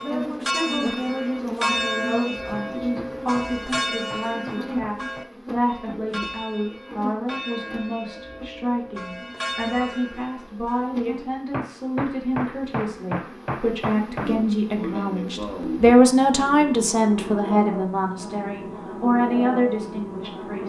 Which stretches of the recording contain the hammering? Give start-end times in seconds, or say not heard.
2.8-5.3, 11.5-14.3.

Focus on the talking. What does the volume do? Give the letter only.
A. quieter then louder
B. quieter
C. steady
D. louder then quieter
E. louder
E.